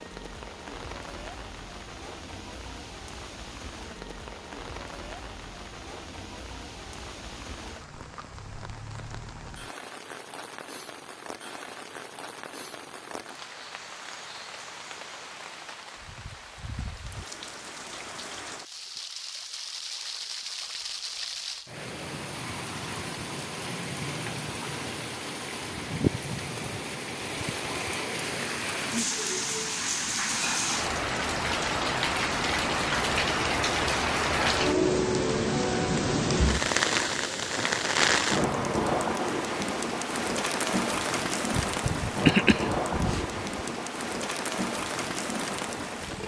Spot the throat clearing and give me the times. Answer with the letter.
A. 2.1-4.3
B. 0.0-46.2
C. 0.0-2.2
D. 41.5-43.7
D.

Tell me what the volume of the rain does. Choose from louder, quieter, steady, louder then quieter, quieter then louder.
louder.